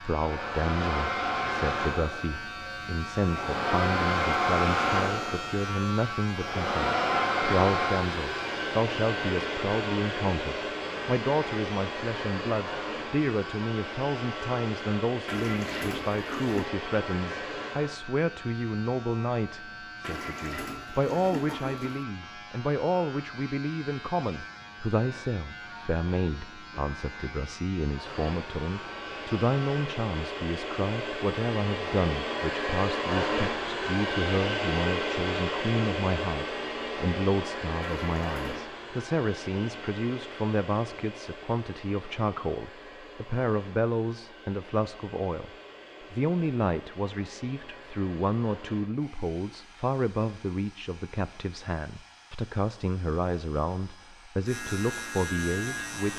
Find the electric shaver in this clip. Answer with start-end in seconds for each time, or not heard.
0.0-29.9, 54.5-56.1.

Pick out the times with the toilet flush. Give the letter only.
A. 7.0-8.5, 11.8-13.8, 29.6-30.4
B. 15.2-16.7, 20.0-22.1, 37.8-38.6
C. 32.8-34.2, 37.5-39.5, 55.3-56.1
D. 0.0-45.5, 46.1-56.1
B.